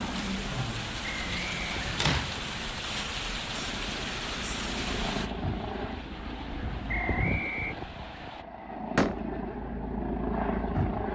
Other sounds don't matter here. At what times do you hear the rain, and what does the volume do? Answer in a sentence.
You can hear the rain from 0.0 to 8.4 s, getting quieter.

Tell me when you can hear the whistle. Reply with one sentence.
You can hear the whistle from 1.0 to 1.7 s and from 6.8 to 7.8 s.